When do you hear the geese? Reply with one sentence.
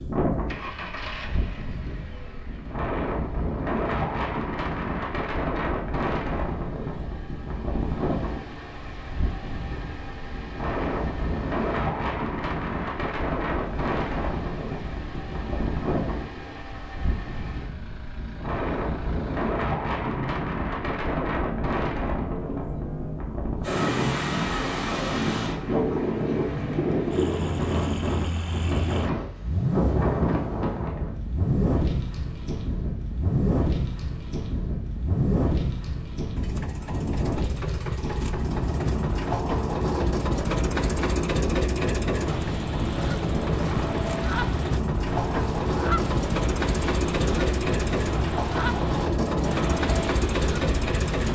You can hear the geese from 42.2 to 51.3 s.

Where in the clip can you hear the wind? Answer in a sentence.
The wind can be heard from 0.0 to 51.3 s.